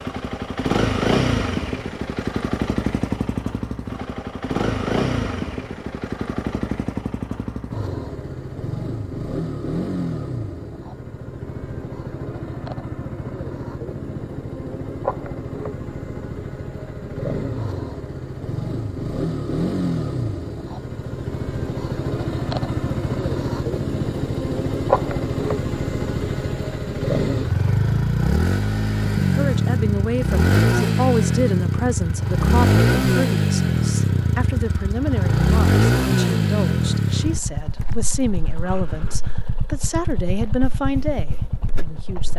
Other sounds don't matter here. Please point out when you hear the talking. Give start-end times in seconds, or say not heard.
29.3-42.3.